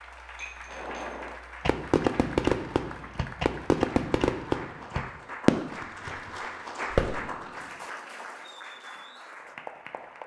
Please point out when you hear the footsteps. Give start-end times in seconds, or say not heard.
not heard.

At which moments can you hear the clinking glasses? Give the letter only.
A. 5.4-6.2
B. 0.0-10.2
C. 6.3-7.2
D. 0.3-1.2
D.